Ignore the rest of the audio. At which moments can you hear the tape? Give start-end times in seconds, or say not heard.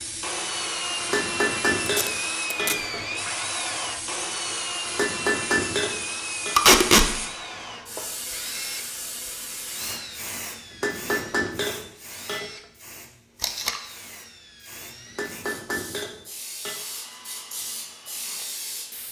1.9-2.8, 6.5-7.0, 13.4-13.8.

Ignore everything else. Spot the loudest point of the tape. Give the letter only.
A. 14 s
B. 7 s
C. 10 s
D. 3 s
B.